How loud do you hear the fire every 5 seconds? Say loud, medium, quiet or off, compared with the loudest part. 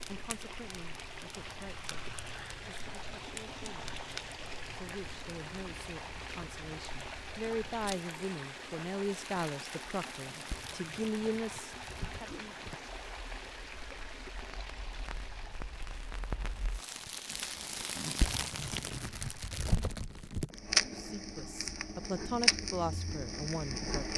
quiet, quiet, quiet, medium, loud.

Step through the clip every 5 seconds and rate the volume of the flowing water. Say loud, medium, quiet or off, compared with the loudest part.
loud, loud, loud, medium, off.